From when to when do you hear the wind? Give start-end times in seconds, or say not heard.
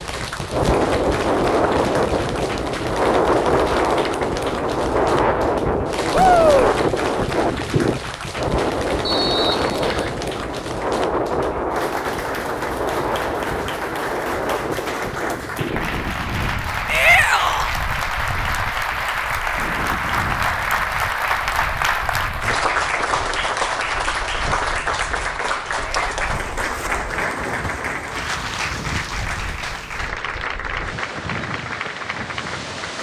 0.0-32.9.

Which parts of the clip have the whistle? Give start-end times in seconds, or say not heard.
9.0-10.2.